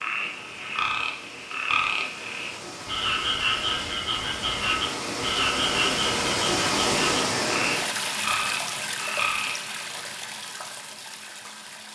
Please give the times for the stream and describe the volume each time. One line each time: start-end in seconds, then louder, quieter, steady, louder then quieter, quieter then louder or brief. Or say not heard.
0.0-11.9 louder then quieter.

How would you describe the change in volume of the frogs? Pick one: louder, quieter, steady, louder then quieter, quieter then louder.
steady.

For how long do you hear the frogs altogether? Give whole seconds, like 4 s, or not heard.
10 s.